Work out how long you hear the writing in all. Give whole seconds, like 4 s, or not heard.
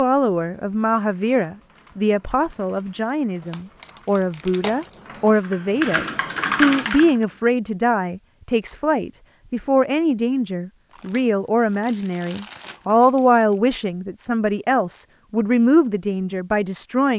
not heard.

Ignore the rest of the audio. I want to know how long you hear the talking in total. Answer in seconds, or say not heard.
17 s.